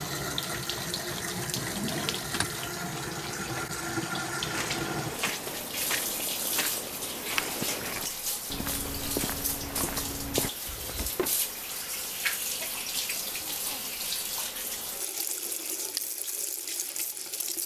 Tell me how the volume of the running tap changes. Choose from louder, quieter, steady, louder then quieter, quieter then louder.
steady.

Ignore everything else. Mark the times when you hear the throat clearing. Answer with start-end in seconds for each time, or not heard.
13.2-13.8.